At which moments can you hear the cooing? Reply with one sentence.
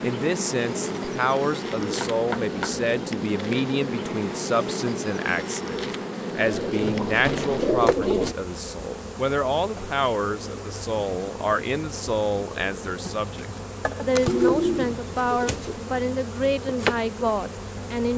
You can hear the cooing from 1.8 to 2.9 s, from 6.3 to 8.3 s and from 14.2 to 15.8 s.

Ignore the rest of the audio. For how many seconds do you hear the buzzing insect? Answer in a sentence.
You can hear the buzzing insect for 18 seconds altogether.